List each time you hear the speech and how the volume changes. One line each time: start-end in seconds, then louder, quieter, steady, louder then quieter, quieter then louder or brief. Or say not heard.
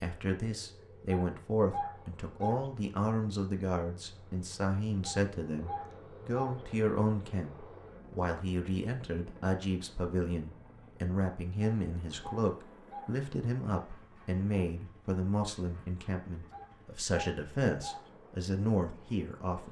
0.0-19.6 steady.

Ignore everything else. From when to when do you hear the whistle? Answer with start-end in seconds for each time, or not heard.
not heard.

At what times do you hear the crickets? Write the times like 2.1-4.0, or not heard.
not heard.